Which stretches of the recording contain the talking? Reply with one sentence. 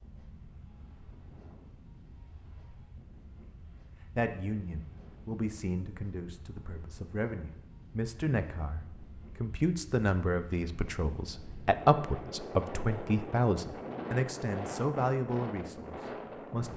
The talking can be heard from 4.2 to 16.7 s.